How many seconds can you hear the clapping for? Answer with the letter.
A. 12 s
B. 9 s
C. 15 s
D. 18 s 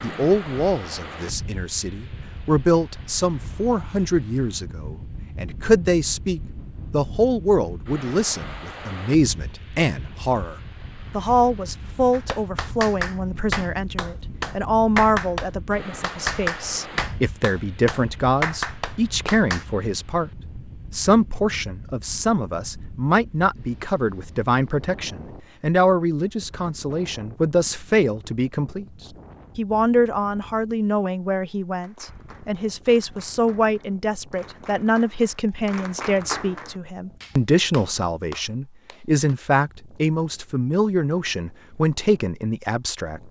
C.